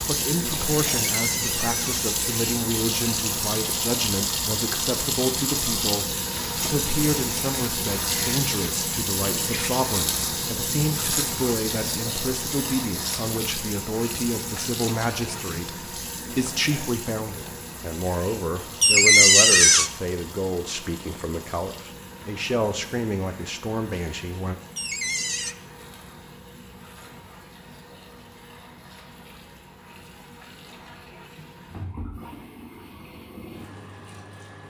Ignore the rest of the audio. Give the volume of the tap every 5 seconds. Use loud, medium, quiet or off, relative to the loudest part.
loud, loud, loud, medium, quiet, quiet, quiet.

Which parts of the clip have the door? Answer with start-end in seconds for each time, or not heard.
1.1-2.2, 18.8-19.9, 24.8-25.6.